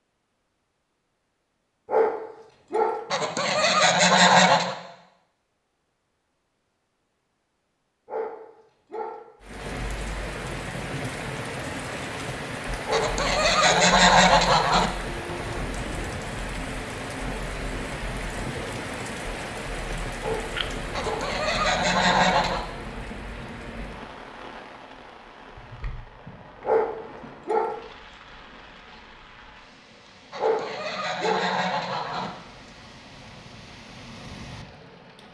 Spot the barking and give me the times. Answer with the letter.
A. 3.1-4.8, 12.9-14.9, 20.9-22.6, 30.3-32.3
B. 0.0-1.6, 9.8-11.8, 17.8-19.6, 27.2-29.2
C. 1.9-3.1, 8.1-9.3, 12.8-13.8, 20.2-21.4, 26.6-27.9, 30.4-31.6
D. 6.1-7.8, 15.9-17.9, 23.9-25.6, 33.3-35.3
C.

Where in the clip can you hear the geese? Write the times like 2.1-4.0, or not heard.
3.1-4.8, 12.9-14.9, 20.9-22.6, 30.3-32.3.